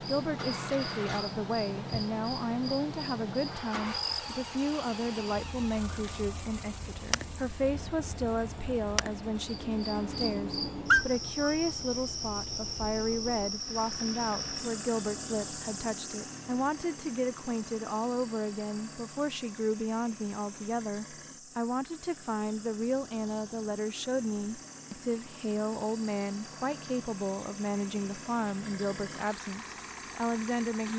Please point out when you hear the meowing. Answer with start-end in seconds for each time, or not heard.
10.9-11.5.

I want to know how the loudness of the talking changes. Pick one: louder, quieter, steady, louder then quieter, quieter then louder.
steady.